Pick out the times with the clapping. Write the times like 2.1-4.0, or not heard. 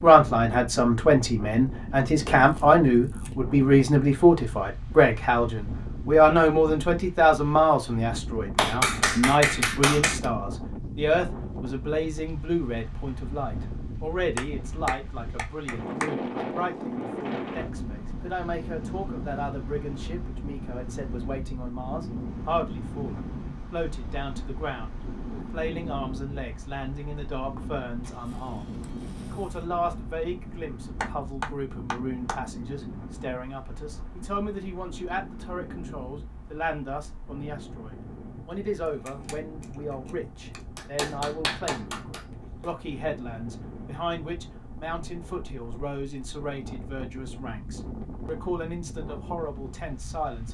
8.6-10.2, 14.3-16.1, 31.0-32.4, 40.8-42.6.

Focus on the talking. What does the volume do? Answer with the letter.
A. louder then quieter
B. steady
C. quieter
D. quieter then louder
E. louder
C.